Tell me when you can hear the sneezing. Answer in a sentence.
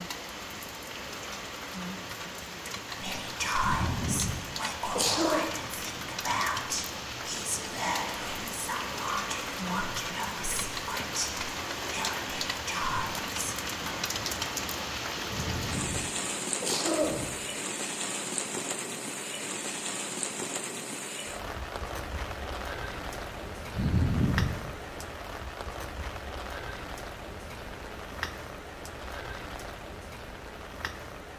You can hear the sneezing from 3.6 to 5.4 s, from 15.2 to 17.3 s and from 23.7 to 24.6 s.